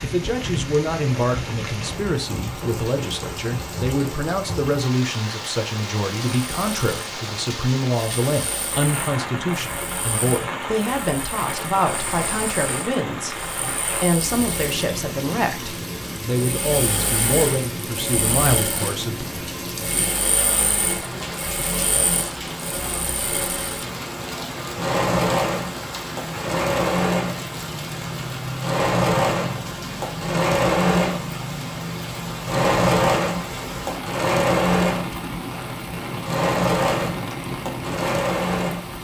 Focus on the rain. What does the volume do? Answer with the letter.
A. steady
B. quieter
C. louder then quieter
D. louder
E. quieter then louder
A.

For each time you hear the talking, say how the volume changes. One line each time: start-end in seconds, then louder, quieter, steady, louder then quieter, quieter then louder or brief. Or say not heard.
0.0-19.2 steady.